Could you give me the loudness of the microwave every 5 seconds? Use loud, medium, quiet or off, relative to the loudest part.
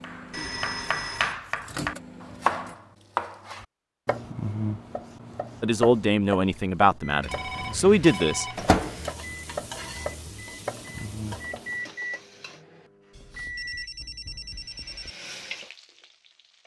medium, loud, medium, off.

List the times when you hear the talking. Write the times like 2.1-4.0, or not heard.
5.6-8.4.